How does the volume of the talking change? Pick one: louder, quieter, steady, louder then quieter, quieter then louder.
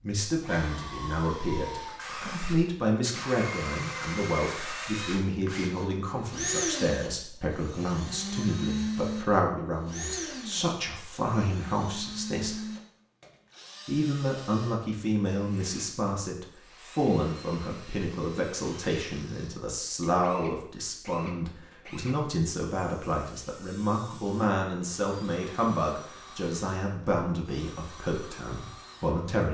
steady.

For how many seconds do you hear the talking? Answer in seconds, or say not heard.
28 s.